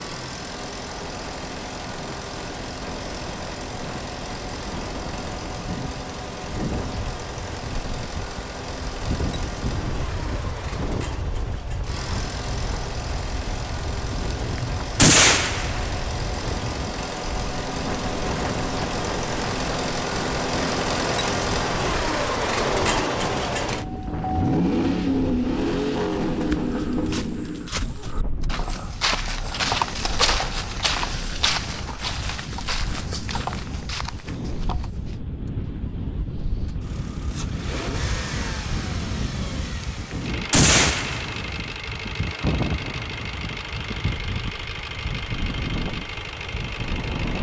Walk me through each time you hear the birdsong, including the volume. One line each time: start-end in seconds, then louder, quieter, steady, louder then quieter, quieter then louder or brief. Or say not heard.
not heard.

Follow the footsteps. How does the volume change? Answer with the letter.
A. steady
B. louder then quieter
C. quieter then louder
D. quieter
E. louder
B.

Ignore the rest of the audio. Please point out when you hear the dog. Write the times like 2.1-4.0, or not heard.
not heard.